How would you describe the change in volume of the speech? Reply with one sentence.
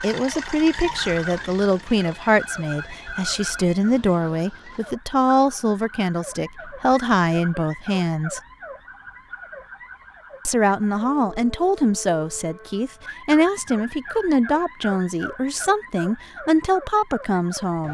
The volume of the speech stays about the same.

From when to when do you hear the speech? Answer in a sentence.
You can hear the speech from 0.0 to 8.4 s and from 10.4 to 17.8 s.